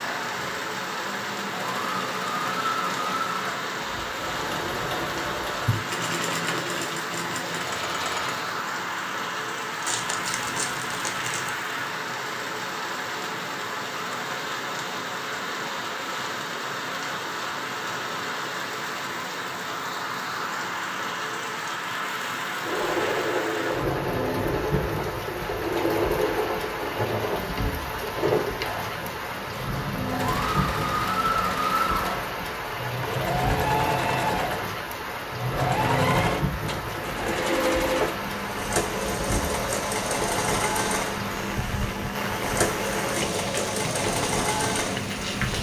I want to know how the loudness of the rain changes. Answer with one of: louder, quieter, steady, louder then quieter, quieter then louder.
steady.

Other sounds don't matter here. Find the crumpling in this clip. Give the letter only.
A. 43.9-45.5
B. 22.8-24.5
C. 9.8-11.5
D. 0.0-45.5
C.